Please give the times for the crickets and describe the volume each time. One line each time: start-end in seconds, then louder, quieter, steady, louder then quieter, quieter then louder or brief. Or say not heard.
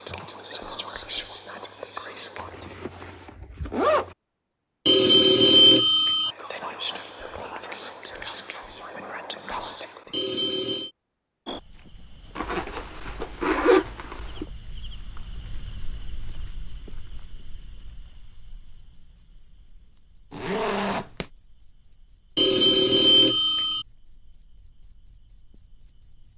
11.4-26.3 louder then quieter.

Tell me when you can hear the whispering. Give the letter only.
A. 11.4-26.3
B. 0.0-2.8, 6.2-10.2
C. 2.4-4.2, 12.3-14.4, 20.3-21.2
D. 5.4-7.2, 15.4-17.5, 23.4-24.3
B.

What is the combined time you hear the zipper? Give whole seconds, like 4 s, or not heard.
5 s.